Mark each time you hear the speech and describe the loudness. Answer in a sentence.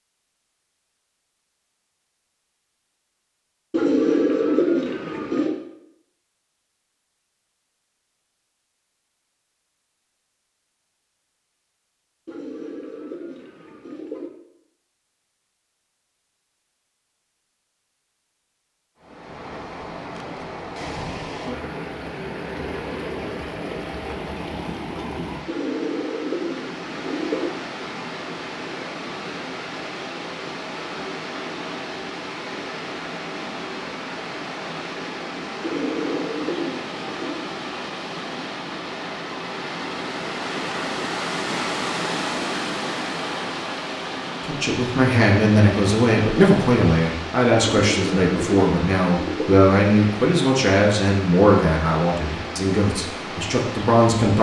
The speech can be heard from 44.4 to 54.3 s, getting quieter.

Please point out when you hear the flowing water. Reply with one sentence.
The flowing water can be heard from 19.0 to 54.3 s.